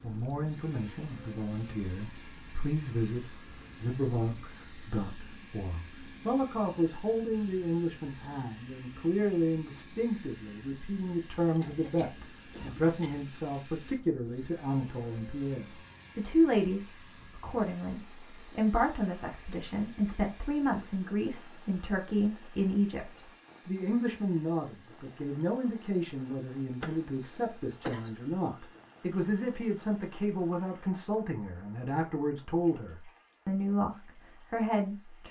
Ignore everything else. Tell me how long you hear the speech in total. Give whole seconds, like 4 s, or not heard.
35 s.